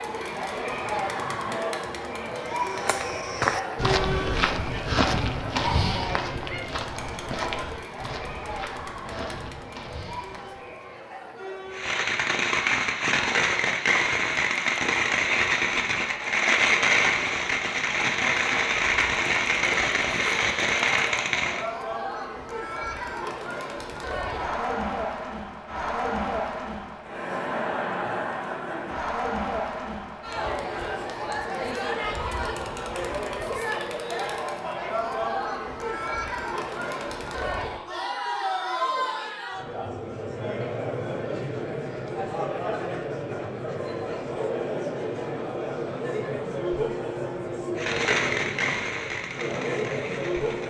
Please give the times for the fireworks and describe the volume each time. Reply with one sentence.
The fireworks can be heard from 11.7 to 21.6 s, at a steady volume; and briefly from 47.8 to 50.6 s.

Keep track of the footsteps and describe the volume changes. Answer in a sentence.
The volume of the footsteps goes down.